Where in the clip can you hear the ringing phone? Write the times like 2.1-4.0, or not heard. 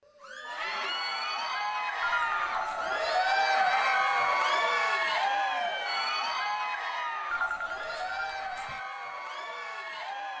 2.0-3.1, 7.3-8.8.